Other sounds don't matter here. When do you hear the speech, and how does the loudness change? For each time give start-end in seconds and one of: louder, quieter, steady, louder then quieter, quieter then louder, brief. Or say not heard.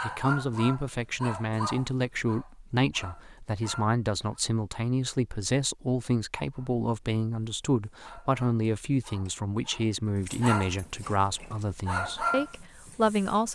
0.0-13.5 steady.